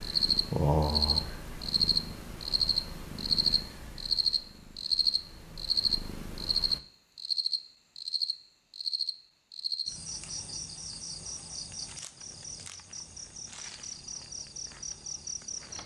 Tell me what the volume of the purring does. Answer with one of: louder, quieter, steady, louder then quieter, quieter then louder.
quieter then louder.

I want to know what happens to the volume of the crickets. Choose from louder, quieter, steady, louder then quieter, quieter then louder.
quieter.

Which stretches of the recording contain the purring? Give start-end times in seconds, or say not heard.
0.0-6.8.